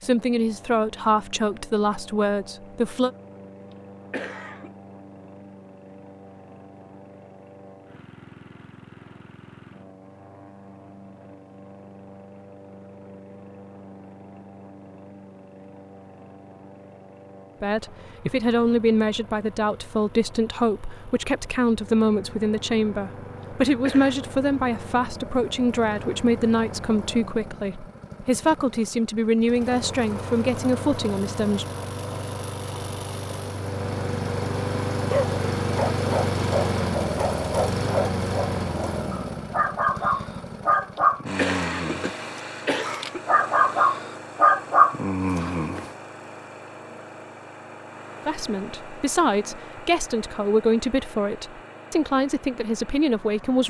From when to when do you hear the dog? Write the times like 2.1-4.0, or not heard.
35.1-45.9.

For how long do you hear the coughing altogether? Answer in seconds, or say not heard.
4 s.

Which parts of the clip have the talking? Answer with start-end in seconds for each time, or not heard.
0.0-3.1, 17.6-31.6, 48.2-53.6.